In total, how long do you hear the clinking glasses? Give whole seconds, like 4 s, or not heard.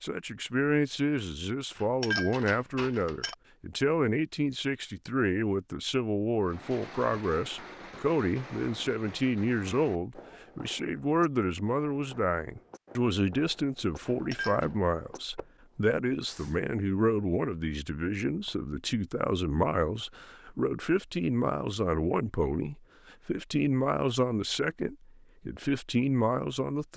2 s.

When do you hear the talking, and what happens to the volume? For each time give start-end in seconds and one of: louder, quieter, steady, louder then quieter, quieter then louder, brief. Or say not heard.
0.0-26.9 steady.